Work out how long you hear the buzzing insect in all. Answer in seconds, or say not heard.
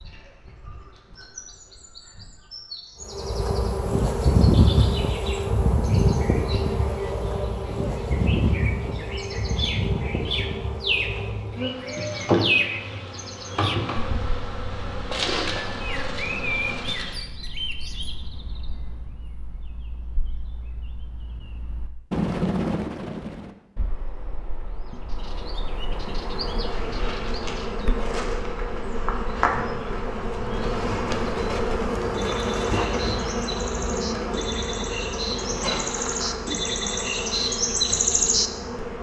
27 s.